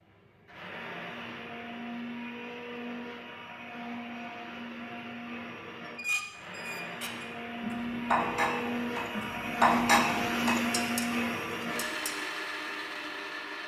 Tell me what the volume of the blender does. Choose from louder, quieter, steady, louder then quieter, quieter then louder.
louder.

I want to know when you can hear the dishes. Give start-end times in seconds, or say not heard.
5.8-12.2.